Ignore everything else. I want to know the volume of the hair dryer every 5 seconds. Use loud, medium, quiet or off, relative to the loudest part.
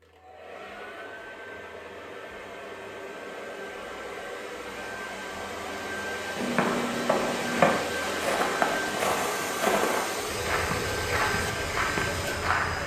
medium, loud, loud.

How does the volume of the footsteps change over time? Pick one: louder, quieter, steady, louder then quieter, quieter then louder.
quieter.